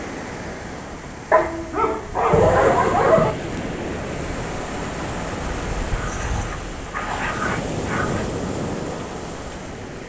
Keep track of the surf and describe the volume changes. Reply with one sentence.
The loudness of the surf goes up.